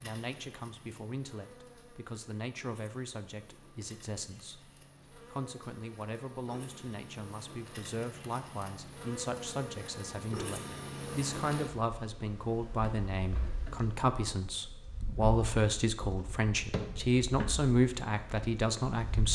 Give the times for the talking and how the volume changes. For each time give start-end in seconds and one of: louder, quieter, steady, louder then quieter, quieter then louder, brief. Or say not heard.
0.0-19.3 louder.